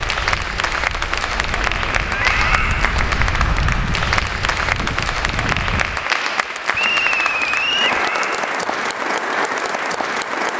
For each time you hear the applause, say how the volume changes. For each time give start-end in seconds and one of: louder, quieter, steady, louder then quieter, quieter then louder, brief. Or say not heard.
0.0-10.5 steady.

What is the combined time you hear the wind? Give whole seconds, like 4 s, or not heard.
6 s.